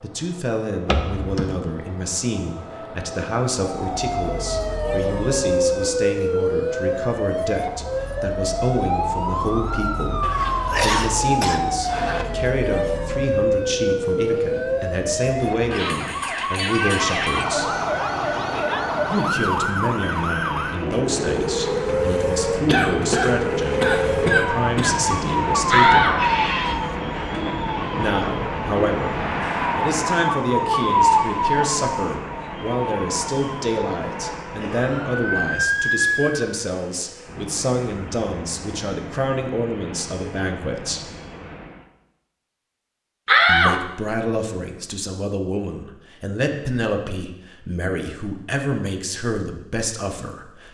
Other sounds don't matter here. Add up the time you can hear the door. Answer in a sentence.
The door can be heard for 3 seconds in total.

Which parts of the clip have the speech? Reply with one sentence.
You can hear the speech from 0.0 to 17.8 s, from 19.1 to 26.2 s, from 27.9 to 41.1 s and from 43.5 to 50.6 s.